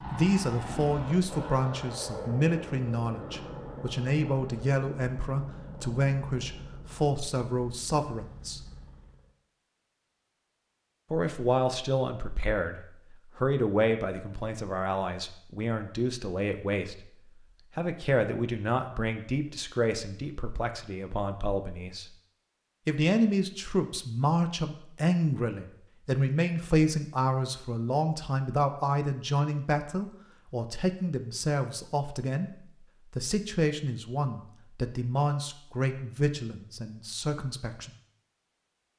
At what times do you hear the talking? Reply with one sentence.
You can hear the talking from 0.0 to 8.6 s, from 11.1 to 17.1 s, from 17.8 to 22.1 s, from 22.9 to 32.5 s and from 33.1 to 37.9 s.